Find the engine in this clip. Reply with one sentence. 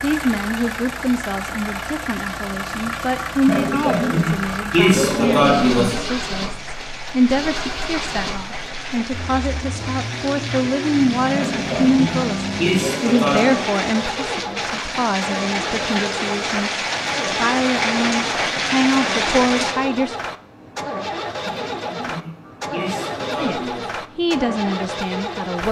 You can hear the engine from 0.0 to 25.6 s.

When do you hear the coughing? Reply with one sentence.
The coughing can be heard from 3.5 to 6.0 s, from 11.3 to 13.7 s and from 21.4 to 23.9 s.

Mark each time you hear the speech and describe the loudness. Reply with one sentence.
The speech can be heard from 0.0 to 20.2 s, at a steady volume; and briefly from 23.4 to 25.6 s.